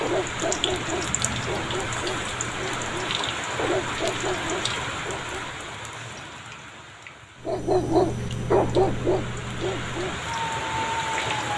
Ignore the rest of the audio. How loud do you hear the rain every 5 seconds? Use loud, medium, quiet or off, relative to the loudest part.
loud, medium, loud.